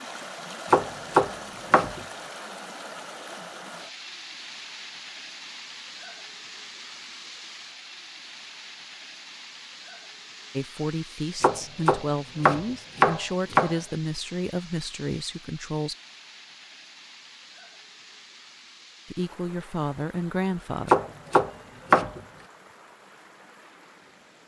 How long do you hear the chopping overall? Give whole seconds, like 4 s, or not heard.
5 s.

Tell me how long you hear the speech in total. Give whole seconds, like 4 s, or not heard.
7 s.